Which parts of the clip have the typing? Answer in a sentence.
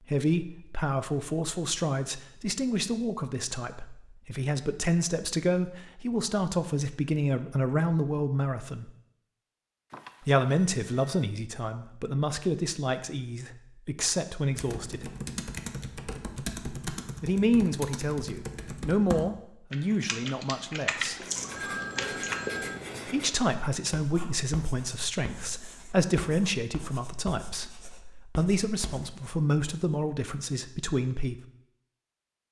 The typing can be heard from 14.5 to 22.4 s.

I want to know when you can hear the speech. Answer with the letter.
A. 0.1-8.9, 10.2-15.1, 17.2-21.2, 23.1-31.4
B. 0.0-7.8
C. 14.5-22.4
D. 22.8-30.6
A.